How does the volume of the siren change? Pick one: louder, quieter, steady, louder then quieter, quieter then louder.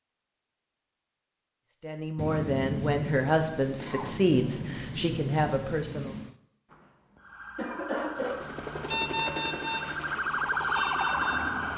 louder.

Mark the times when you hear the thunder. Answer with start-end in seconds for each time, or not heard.
2.1-6.3.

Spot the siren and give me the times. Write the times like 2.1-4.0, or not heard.
7.2-11.7.